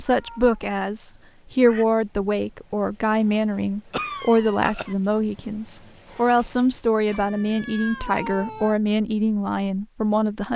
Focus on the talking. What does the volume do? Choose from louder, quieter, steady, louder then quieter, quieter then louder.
steady.